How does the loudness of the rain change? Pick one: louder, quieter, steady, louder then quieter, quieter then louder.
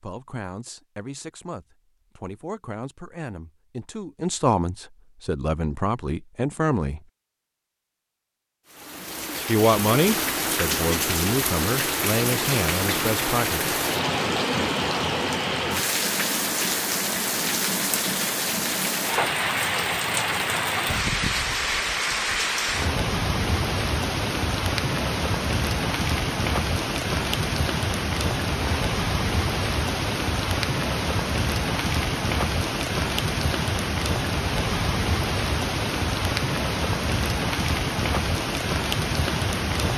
steady.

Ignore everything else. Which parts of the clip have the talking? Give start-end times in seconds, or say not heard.
0.0-7.0, 9.4-13.6.